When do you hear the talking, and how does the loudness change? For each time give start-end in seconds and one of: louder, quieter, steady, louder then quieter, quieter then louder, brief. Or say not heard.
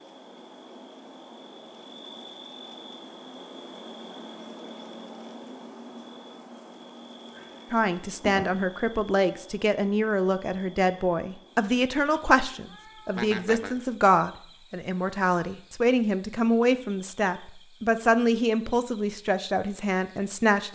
7.7-20.7 steady.